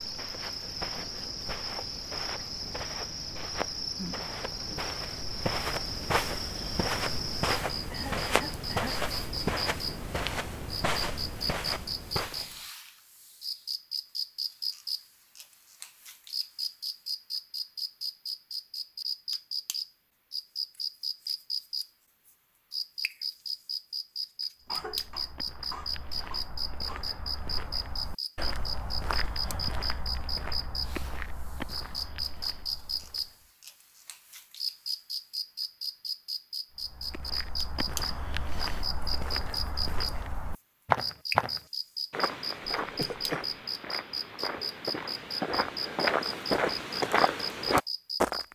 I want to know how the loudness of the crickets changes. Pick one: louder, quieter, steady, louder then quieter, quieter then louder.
steady.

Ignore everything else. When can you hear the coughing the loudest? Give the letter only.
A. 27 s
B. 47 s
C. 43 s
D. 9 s
C.